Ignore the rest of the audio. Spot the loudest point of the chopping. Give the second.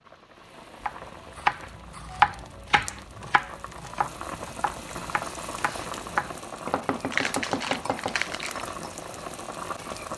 2 s.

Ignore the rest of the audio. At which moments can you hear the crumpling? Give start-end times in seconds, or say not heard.
7.1-8.7.